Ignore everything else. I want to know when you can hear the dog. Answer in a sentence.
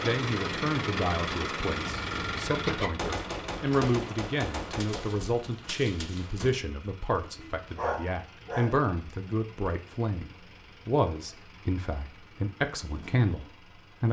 You can hear the dog from 7.2 to 8.8 s.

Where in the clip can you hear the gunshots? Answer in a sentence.
You can hear the gunshots from 3.0 to 6.5 s.